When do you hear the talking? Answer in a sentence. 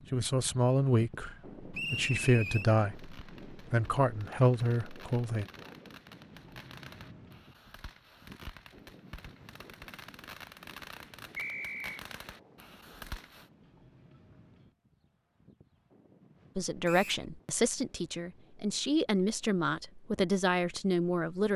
You can hear the talking from 0.1 to 5.5 s and from 16.6 to 21.5 s.